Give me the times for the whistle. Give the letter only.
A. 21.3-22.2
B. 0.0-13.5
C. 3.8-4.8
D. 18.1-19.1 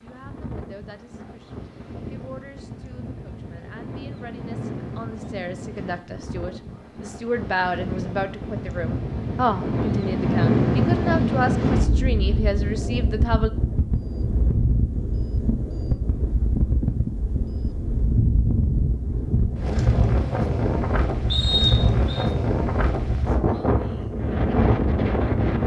A.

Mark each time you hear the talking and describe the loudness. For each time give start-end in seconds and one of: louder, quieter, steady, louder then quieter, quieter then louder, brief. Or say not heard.
0.0-13.5 louder.